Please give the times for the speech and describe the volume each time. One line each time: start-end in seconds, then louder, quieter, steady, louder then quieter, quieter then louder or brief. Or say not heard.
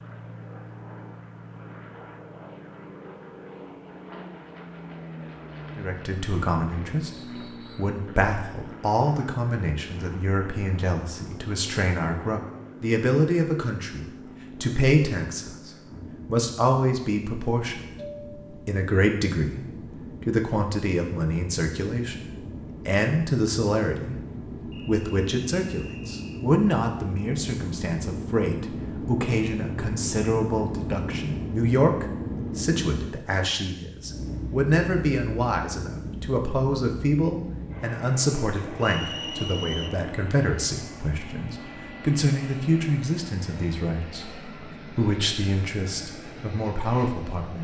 5.8-47.6 steady.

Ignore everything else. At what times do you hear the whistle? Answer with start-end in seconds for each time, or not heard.
7.1-8.0, 24.7-26.4, 38.8-40.0.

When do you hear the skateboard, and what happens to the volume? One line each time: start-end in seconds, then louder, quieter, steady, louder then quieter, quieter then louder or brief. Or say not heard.
not heard.